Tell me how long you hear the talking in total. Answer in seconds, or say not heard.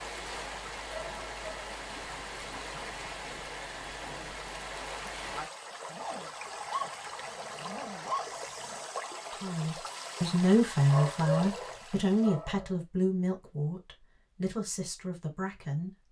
7 s.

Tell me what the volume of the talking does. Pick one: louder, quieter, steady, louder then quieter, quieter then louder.
quieter.